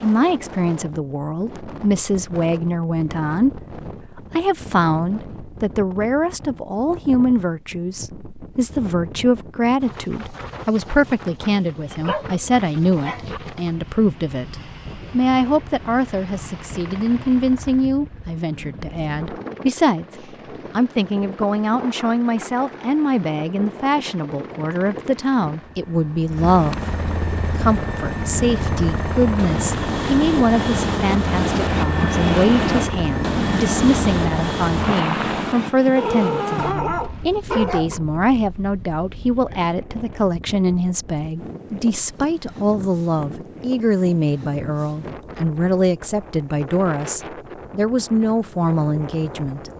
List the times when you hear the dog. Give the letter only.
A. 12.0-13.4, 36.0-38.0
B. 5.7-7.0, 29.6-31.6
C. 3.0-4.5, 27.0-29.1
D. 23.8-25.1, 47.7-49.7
A.